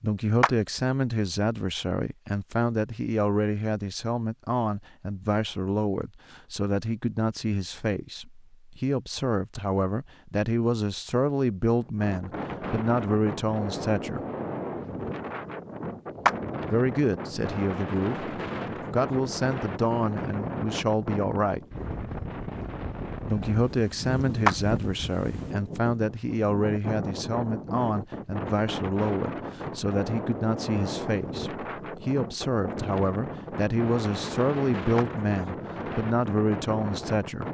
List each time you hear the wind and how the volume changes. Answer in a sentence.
You can hear the wind from 11.8 to 37.4 s, at a steady volume.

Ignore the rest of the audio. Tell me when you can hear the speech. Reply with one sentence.
The speech can be heard from 0.0 to 14.2 s, from 16.7 to 21.6 s and from 23.2 to 37.4 s.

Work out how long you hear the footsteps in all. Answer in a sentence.
The footsteps can't be heard in this clip.